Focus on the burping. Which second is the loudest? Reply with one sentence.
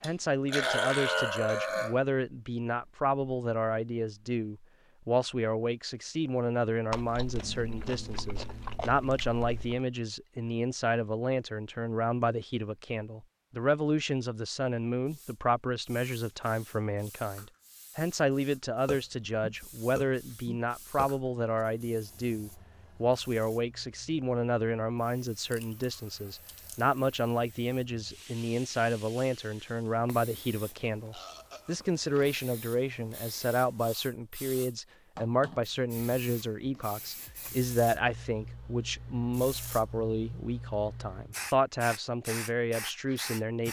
The volume of the burping peaks at 1 second.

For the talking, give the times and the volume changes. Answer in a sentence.
The talking can be heard from 0.0 to 43.6 s, at a steady volume.